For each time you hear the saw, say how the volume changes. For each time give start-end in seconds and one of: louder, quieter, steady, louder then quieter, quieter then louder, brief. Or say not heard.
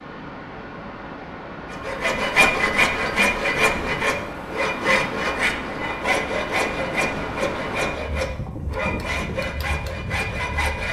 1.7-10.8 quieter.